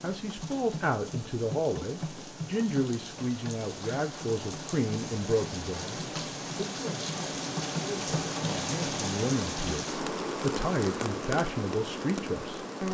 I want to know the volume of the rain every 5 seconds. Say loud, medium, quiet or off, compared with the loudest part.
medium, loud, loud.